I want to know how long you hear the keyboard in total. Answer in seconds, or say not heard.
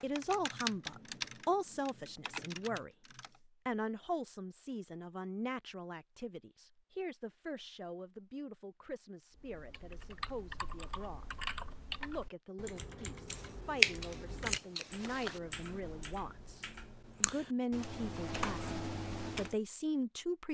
14 s.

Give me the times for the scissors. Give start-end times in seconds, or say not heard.
13.3-15.4.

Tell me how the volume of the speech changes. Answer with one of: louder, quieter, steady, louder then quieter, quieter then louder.
quieter then louder.